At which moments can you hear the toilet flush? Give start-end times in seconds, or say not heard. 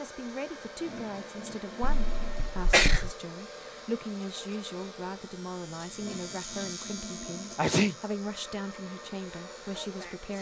0.5-2.5, 5.8-7.6.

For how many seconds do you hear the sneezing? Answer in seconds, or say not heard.
2 s.